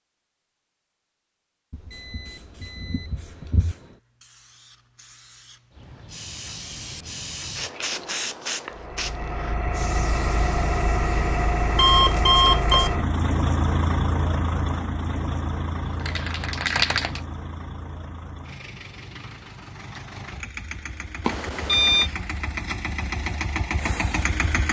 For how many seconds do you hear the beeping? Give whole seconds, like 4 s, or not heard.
4 s.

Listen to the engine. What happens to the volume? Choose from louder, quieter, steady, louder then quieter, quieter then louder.
quieter then louder.